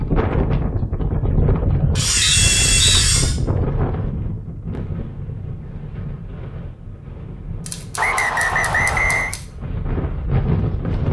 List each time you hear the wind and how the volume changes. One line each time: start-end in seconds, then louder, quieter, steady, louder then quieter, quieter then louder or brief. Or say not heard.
0.0-11.0 quieter then louder.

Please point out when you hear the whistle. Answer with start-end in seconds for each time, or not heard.
2.2-3.0, 8.0-9.3.